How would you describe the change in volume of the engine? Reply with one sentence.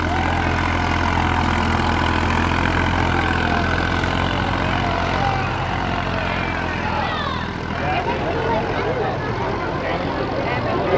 The loudness of the engine goes down.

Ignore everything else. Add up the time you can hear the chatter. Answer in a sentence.
You can hear the chatter for 11 seconds altogether.